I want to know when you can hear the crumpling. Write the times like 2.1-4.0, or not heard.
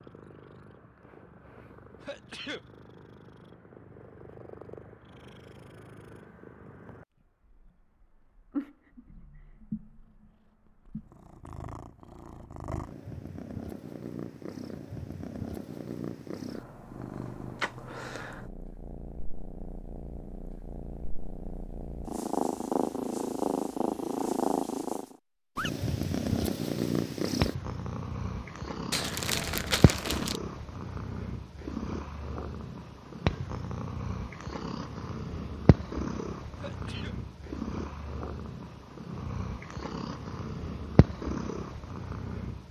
28.9-30.4.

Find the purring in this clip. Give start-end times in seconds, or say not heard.
0.0-42.6.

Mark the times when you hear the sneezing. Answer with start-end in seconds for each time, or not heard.
2.0-2.6, 36.5-37.1.